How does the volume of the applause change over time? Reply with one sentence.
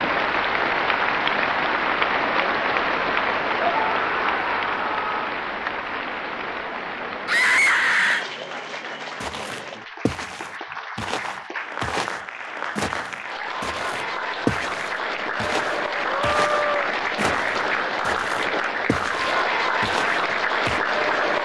The loudness of the applause goes down, then up.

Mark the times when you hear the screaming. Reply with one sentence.
The screaming can be heard from 3.5 to 5.2 s, from 7.2 to 8.2 s and from 16.1 to 16.9 s.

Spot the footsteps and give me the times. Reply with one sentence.
You can hear the footsteps from 9.2 to 20.8 s.